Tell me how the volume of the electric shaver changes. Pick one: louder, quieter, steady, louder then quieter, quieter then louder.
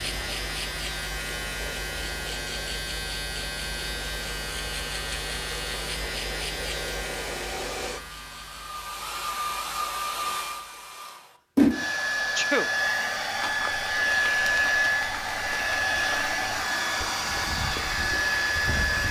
quieter.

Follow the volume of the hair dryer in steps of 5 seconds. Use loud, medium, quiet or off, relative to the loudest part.
quiet, medium, loud, loud.